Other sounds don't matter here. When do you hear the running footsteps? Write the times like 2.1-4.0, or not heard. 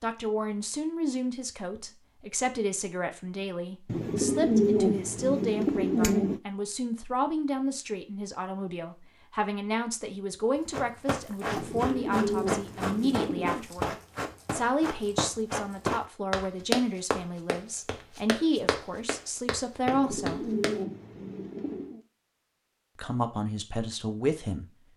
10.7-20.8.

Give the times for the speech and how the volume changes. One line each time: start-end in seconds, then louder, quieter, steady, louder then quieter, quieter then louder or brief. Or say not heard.
0.0-20.5 steady
22.9-24.6 brief.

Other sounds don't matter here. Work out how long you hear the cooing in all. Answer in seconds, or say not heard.
7 s.